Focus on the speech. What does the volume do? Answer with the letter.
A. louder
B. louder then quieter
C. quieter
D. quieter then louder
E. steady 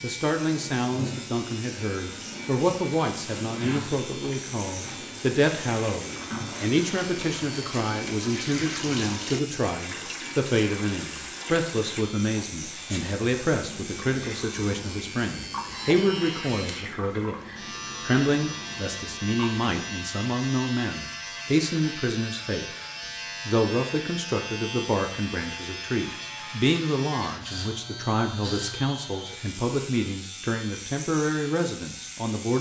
E.